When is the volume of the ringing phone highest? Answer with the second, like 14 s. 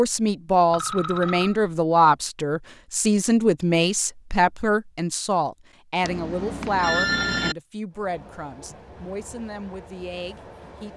7 s.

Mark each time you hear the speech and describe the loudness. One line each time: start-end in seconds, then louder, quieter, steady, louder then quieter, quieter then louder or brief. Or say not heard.
0.0-10.9 quieter.